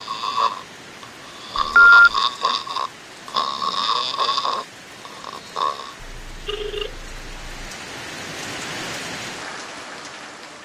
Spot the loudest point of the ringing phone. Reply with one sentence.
The loudest moment of the ringing phone is at 2 seconds.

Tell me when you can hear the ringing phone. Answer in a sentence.
You can hear the ringing phone from 1.6 to 2.1 s and from 6.0 to 7.5 s.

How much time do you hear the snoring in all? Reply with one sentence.
You can hear the snoring for 6 seconds altogether.